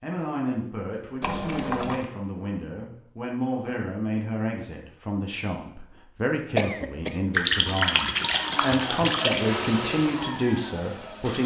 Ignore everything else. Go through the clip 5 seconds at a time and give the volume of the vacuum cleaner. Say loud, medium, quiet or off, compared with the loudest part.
off, loud, medium.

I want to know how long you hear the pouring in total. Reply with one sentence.
You can hear the pouring for 3 seconds altogether.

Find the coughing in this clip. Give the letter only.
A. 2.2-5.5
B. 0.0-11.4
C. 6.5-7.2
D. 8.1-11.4
C.